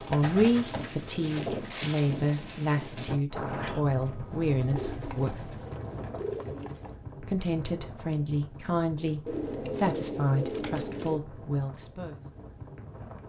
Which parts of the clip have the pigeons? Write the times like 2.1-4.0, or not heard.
0.2-1.8, 4.7-6.9, 9.2-11.2.